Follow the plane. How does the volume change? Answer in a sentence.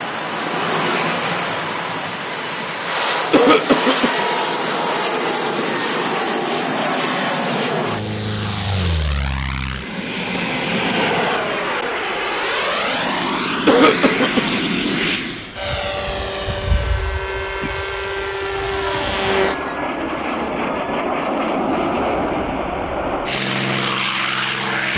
The volume of the plane stays about the same.